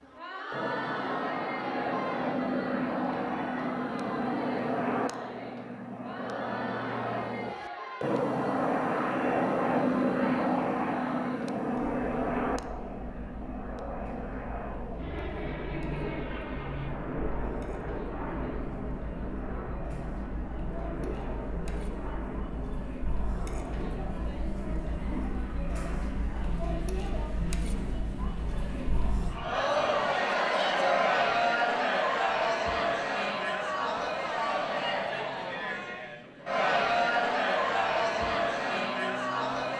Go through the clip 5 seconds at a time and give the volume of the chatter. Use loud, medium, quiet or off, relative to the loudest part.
medium, quiet, quiet, quiet, quiet, medium, loud, loud.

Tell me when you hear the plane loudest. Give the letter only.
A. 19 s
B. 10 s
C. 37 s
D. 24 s
B.